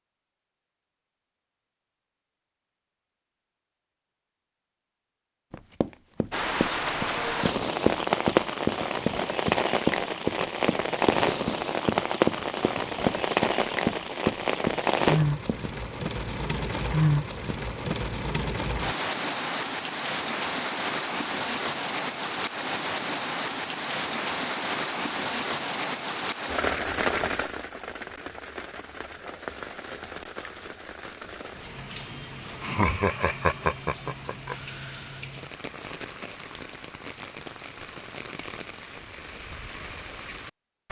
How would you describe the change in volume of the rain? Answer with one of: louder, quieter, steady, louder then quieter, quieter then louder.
quieter.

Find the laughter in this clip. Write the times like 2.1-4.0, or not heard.
32.6-34.5.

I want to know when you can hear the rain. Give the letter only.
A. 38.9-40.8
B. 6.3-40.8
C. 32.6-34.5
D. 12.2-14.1
B.